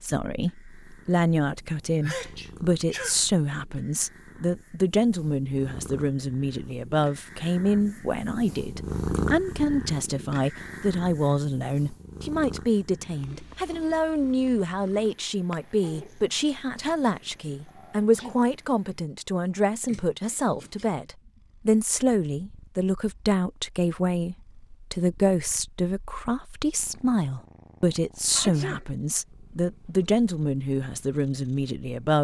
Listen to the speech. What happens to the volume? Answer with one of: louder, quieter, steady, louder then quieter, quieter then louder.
steady.